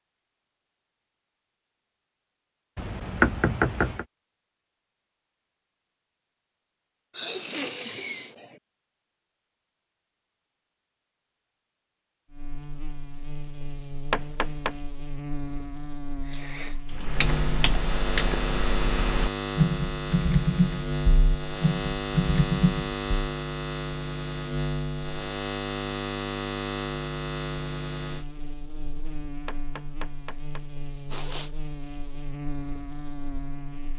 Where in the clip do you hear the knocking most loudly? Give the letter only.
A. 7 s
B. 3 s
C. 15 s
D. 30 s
B.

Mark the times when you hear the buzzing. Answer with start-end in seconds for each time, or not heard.
12.3-33.9.